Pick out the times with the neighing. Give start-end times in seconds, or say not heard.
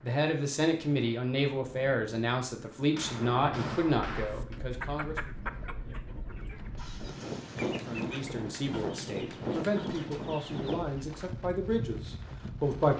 not heard.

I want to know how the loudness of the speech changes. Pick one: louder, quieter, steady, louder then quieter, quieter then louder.
quieter then louder.